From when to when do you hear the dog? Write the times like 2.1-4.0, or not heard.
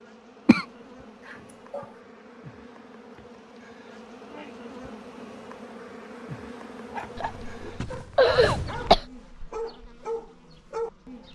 6.8-11.3.